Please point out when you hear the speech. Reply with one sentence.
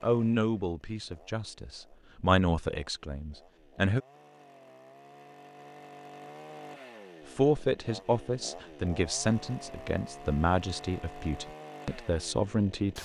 You can hear the speech from 0.0 to 4.0 s and from 7.3 to 13.0 s.